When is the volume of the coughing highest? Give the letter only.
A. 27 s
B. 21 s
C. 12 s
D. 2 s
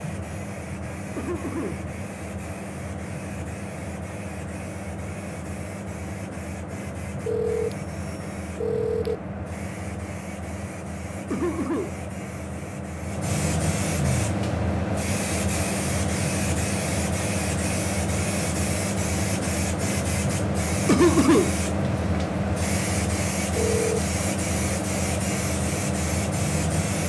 B.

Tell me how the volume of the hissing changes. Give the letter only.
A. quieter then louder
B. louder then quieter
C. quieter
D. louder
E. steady
D.